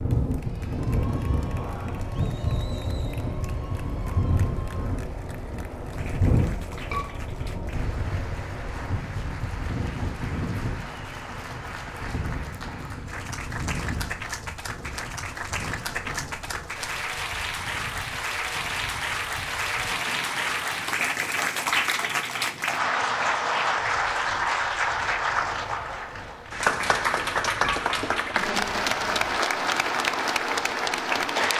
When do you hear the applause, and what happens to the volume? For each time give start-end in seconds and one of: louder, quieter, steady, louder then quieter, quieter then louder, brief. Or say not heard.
0.0-31.5 louder.